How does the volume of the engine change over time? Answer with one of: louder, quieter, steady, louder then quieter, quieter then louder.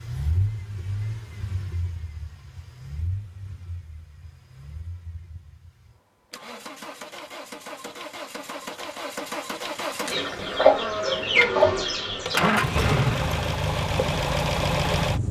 quieter then louder.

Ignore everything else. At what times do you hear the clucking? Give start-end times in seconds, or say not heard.
10.1-12.5.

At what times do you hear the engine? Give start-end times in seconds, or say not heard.
0.0-15.2.